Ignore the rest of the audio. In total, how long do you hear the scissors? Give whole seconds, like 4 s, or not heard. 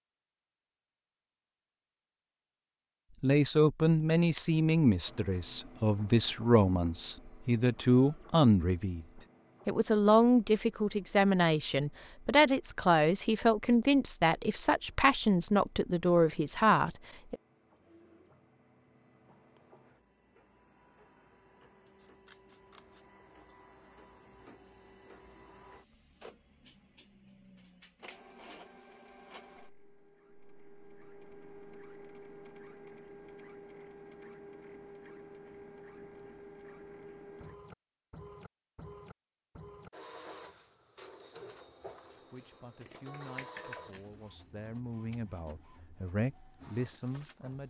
5 s.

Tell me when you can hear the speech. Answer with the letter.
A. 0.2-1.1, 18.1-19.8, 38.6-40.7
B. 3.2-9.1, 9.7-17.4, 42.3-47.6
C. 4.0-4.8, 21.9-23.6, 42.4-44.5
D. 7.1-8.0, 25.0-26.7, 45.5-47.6
B.